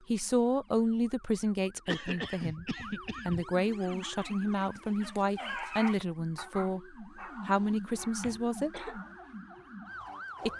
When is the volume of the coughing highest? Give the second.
2 s.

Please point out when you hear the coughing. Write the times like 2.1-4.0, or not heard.
1.9-3.5, 8.2-9.0.